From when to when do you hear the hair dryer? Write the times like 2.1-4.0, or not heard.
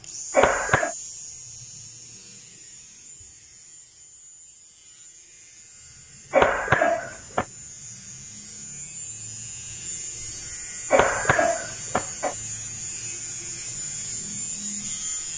not heard.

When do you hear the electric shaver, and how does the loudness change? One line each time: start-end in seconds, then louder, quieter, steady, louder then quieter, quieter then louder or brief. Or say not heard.
0.0-15.3 quieter then louder.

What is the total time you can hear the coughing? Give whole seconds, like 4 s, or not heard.
3 s.